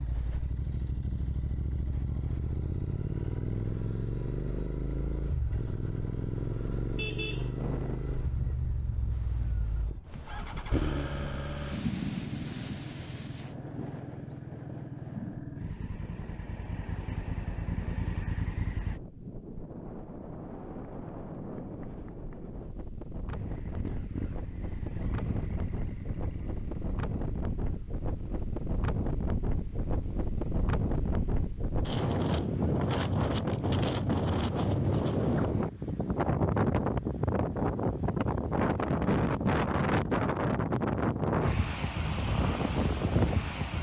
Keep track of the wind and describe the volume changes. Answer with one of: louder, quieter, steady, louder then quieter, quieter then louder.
louder.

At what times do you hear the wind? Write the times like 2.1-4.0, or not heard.
7.5-43.7.